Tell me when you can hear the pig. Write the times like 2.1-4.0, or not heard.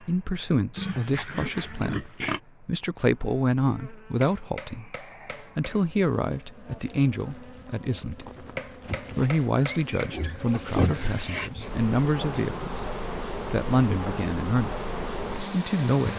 0.8-2.4, 9.8-11.3.